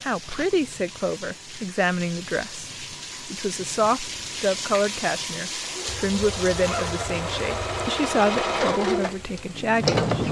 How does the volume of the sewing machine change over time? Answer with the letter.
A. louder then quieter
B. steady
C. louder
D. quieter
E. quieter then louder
A.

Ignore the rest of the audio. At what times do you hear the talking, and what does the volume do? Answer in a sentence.
The talking can be heard from 0.0 to 10.0 s, at a steady volume.